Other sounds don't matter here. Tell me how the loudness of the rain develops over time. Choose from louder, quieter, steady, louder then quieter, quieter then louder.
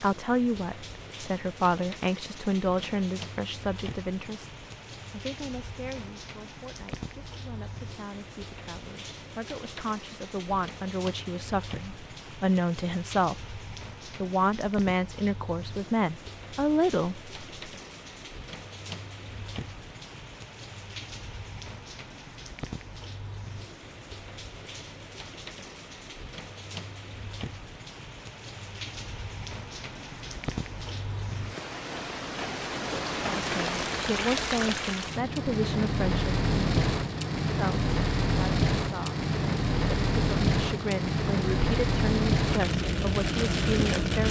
louder.